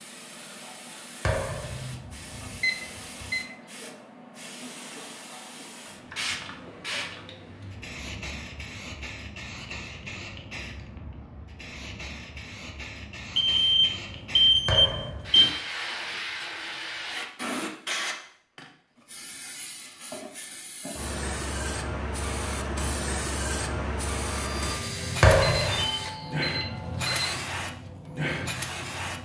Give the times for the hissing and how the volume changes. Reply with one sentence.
The hissing can be heard from 0.0 to 29.2 s, getting louder.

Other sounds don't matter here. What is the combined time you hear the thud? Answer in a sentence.
You can hear the thud for 2 seconds altogether.